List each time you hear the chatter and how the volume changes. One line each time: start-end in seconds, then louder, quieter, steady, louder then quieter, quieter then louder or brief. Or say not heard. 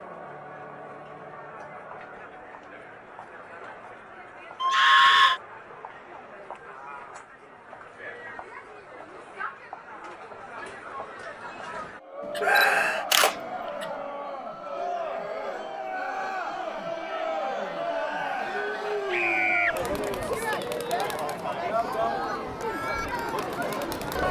0.0-24.2 louder.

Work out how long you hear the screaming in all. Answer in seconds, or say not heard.
2 s.